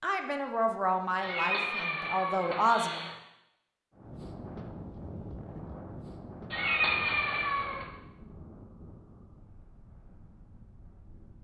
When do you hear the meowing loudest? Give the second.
7 s.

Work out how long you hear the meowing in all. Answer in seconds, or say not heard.
3 s.